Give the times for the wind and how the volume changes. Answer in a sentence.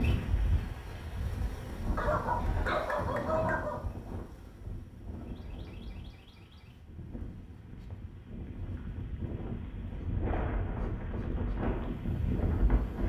You can hear the wind from 0.0 to 13.0 s, getting quieter then louder.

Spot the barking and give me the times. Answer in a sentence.
The barking can be heard from 1.9 to 3.8 s.